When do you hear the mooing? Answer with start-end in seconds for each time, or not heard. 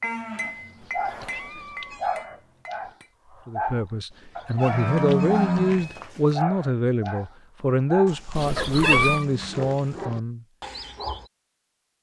0.0-1.6, 4.6-6.3, 8.1-10.1.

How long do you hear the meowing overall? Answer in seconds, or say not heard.
4 s.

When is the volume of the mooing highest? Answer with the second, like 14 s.
5 s.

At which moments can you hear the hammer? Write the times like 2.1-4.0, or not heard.
0.0-3.1.